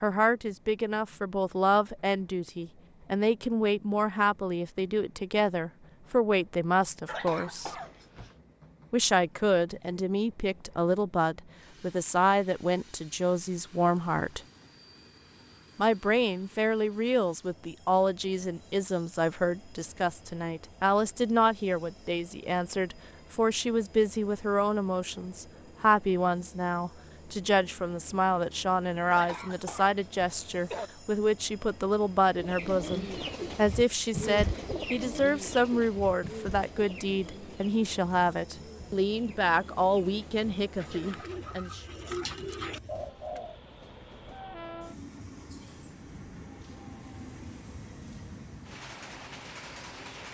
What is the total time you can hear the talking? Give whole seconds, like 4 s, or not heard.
39 s.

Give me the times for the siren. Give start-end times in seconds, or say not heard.
not heard.